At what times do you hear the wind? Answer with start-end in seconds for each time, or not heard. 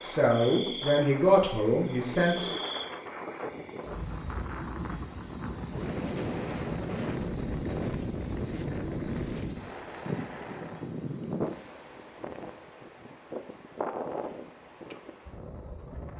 0.0-16.1.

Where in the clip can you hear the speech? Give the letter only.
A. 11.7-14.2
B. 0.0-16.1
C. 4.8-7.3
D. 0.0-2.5
D.